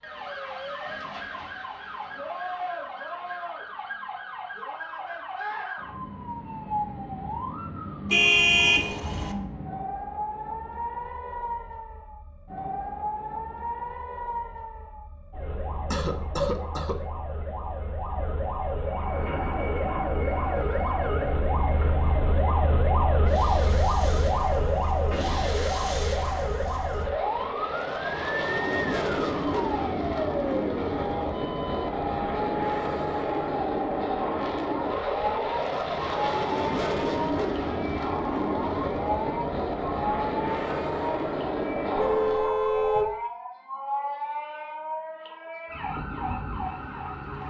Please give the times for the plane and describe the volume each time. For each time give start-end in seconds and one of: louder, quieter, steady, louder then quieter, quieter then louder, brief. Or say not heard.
18.8-42.5 louder.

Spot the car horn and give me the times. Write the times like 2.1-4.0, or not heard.
8.1-9.3, 42.0-43.1.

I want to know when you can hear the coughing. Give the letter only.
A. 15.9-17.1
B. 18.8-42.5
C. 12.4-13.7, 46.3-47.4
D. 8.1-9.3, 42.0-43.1
A.